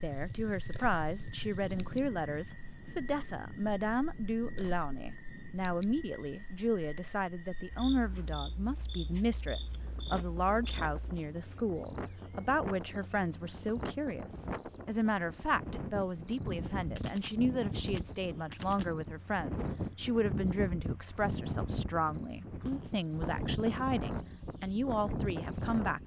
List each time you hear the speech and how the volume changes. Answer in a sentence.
The speech can be heard from 0.0 to 26.0 s, at a steady volume.